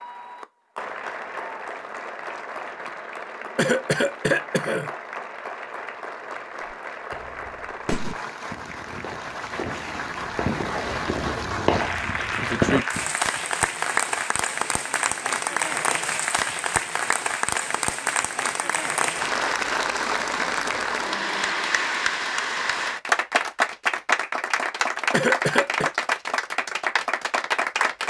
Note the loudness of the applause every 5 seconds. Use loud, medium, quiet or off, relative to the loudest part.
medium, medium, loud, loud, loud, loud.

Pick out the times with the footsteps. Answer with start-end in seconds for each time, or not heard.
not heard.